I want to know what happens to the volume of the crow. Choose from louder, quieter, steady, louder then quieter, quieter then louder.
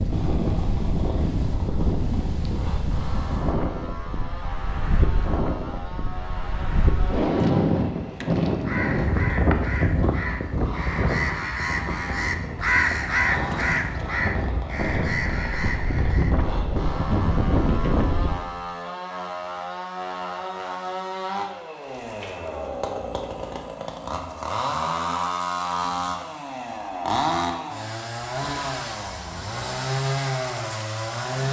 louder then quieter.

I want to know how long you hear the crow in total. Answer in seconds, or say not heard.
8 s.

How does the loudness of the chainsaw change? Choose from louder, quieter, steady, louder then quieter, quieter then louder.
louder.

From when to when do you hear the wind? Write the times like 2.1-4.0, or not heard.
0.0-18.4.